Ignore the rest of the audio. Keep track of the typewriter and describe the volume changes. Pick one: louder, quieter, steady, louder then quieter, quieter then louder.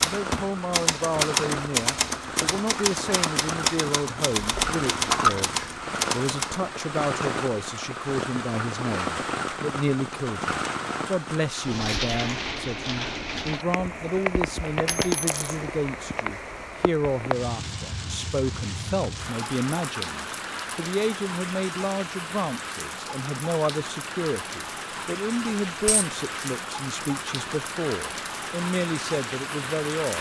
steady.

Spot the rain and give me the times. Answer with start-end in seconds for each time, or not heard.
0.0-30.1.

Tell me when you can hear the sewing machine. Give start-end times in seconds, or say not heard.
not heard.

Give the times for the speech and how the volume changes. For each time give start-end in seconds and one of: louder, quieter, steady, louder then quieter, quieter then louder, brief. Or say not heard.
0.0-30.1 steady.